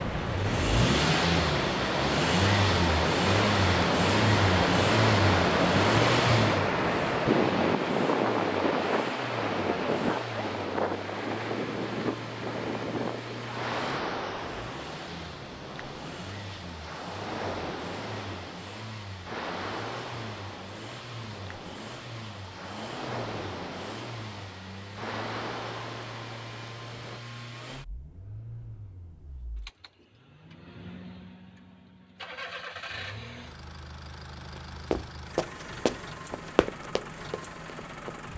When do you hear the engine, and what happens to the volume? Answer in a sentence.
You can hear the engine from 0.0 to 38.3 s, getting quieter.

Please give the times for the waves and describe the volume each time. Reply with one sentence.
The waves can be heard from 0.0 to 27.2 s, getting quieter.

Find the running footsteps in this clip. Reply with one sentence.
You can hear the running footsteps from 34.9 to 38.3 s.